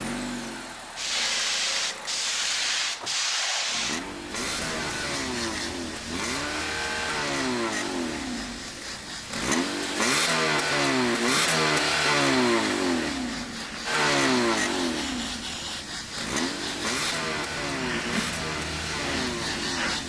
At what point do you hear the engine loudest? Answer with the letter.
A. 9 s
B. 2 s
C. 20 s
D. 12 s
D.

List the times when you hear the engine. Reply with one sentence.
You can hear the engine from 0.0 to 20.0 s.